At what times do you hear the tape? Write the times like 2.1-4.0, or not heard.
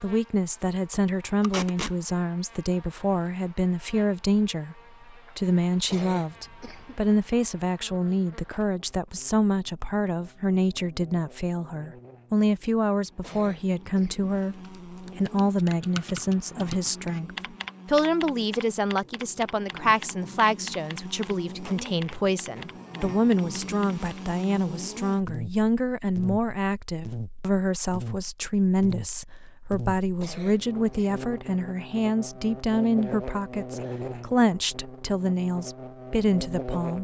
1.4-1.9, 21.2-22.6.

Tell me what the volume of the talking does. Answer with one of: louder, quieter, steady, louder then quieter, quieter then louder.
steady.